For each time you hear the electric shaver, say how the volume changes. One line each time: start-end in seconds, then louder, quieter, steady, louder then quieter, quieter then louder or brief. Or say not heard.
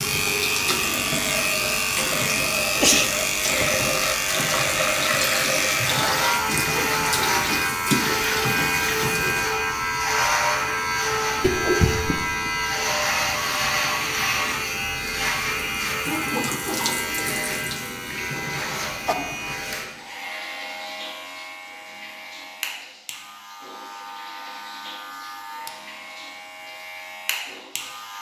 0.0-28.1 quieter.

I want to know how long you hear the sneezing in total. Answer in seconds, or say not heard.
2 s.